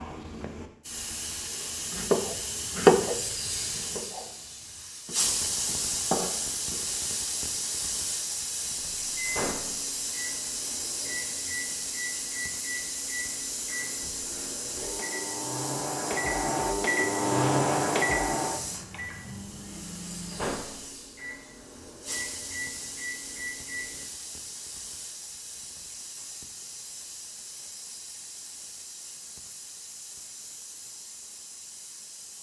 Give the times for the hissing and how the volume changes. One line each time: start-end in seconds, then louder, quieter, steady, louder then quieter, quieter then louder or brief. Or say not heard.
0.0-32.3 quieter.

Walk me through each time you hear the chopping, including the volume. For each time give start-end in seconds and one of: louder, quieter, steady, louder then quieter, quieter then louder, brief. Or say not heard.
1.9-7.2 quieter then louder.